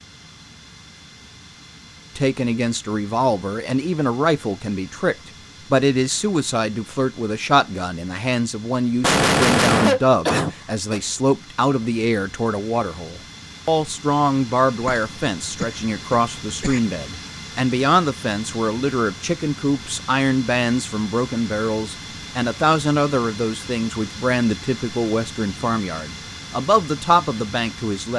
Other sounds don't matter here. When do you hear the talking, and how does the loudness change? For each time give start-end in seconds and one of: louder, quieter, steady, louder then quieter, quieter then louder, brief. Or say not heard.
2.1-28.1 steady.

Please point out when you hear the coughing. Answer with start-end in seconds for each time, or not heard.
9.0-11.0, 14.8-16.8.